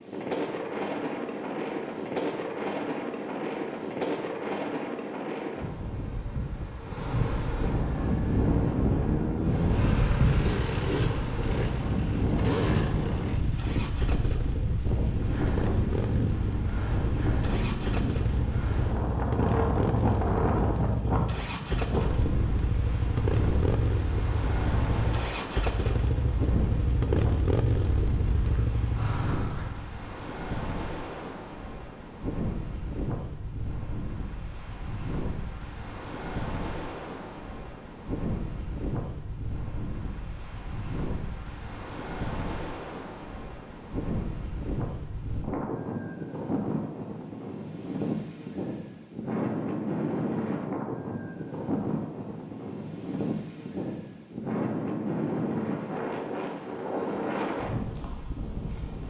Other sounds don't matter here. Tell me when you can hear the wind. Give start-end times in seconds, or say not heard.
0.0-59.0.